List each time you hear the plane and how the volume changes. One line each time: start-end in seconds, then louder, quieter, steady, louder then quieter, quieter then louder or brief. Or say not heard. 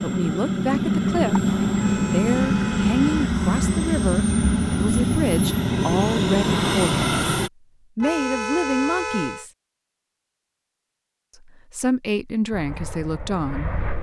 0.0-7.5 steady
12.5-13.9 brief.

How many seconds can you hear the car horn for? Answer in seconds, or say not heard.
3 s.